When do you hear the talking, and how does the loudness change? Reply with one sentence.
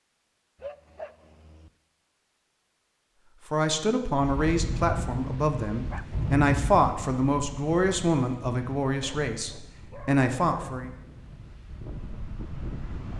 You can hear the talking from 3.5 to 10.9 s, at a steady volume.